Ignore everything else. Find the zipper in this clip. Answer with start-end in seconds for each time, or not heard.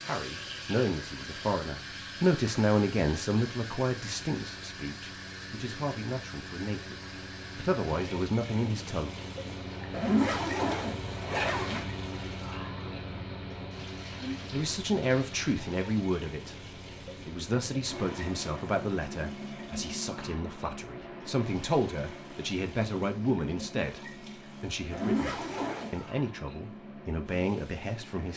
9.9-11.8, 24.9-25.9.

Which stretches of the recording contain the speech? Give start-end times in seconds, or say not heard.
0.0-9.1, 14.2-16.6, 17.2-28.3.